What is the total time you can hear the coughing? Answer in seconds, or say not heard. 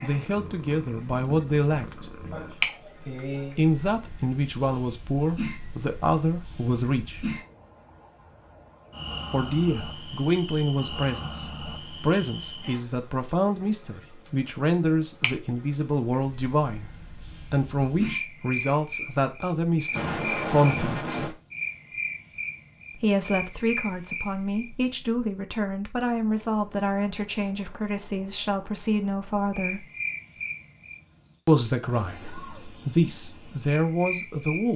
4 s.